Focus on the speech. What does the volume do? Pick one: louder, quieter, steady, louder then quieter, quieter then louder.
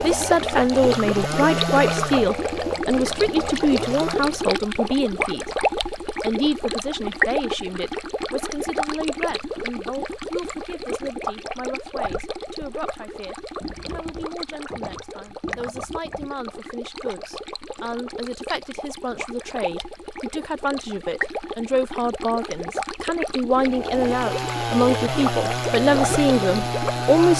quieter then louder.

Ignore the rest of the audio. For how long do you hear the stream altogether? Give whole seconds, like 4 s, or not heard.
27 s.